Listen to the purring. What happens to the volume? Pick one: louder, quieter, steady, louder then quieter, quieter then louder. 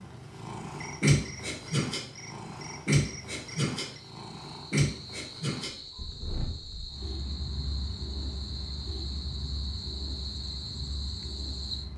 quieter.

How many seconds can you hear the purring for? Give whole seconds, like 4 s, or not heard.
12 s.